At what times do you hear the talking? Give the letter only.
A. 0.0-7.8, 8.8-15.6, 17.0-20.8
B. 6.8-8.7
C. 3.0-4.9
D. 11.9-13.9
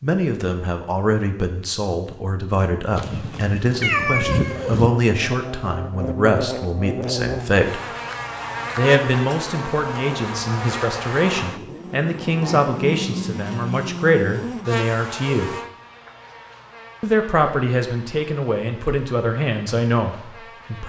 A.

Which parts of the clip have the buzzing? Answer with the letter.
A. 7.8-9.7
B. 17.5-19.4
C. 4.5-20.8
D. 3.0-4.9
C.